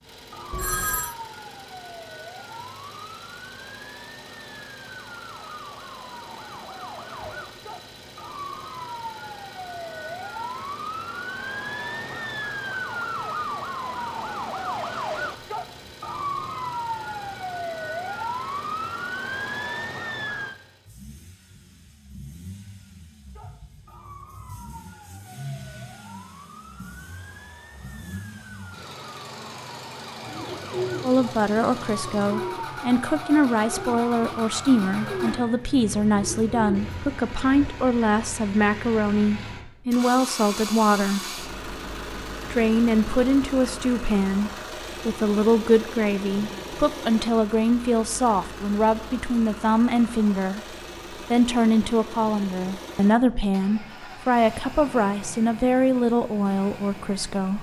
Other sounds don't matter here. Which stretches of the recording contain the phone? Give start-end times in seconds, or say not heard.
0.5-1.1.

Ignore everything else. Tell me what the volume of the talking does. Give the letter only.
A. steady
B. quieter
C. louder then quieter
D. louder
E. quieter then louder
A.